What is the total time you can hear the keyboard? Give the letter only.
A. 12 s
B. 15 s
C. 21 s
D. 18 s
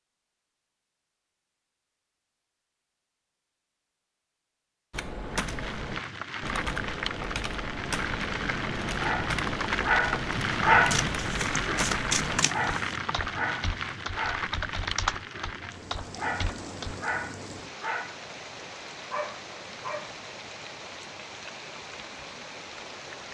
A.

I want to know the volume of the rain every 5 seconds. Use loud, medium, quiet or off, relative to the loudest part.
off, loud, loud, medium, medium.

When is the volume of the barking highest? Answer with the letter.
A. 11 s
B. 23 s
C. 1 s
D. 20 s
A.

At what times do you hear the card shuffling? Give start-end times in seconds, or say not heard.
10.9-12.9.